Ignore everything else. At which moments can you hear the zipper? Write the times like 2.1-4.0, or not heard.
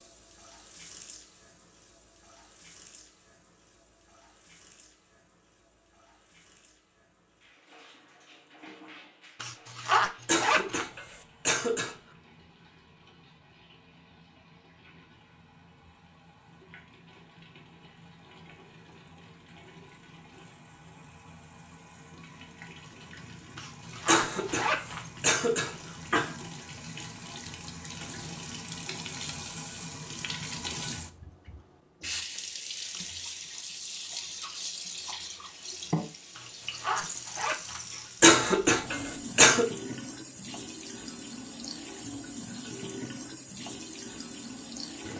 9.4-10.8, 23.6-25.1, 36.4-38.1.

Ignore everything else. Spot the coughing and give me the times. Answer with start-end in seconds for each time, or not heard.
10.2-11.9, 24.1-26.4, 38.2-39.7.